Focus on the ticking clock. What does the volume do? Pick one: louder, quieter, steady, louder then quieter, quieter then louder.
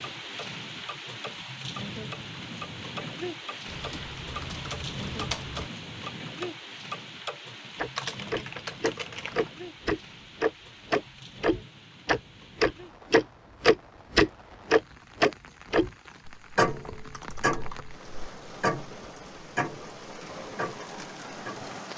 louder then quieter.